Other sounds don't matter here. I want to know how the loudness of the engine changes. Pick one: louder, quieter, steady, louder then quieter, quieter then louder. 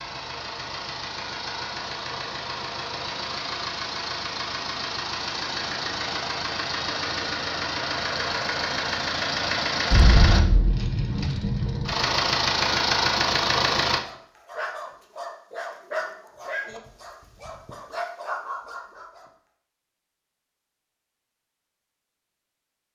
louder.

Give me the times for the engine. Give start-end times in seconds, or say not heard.
0.0-14.1.